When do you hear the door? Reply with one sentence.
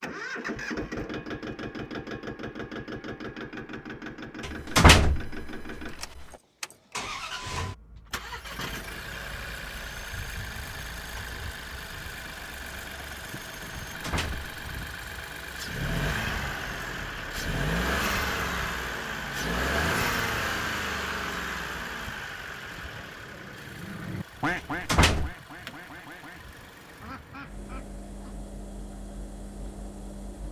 The door can be heard from 4.4 to 5.9 s, from 13.9 to 14.5 s and from 24.6 to 25.4 s.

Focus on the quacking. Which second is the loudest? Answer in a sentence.
The loudest moment of the quacking is at 25 seconds.